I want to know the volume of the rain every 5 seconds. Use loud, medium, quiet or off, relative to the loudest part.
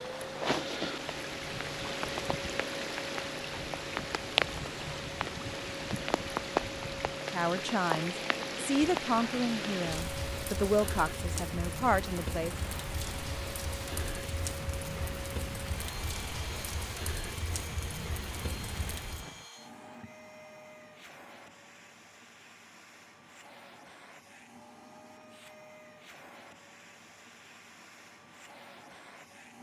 loud, loud, medium, medium, off, off.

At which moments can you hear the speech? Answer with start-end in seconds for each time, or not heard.
7.3-12.6.